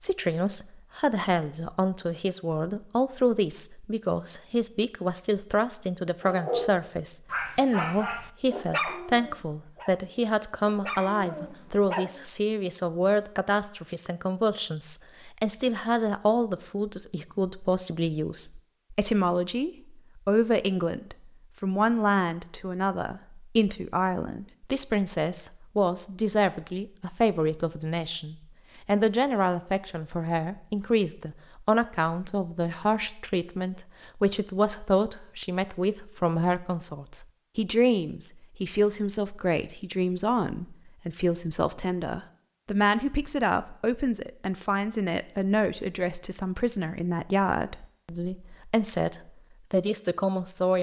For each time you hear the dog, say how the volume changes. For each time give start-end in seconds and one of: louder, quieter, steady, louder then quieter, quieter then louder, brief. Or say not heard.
6.2-12.2 quieter then louder.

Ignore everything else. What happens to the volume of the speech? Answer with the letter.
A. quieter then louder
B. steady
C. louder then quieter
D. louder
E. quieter
B.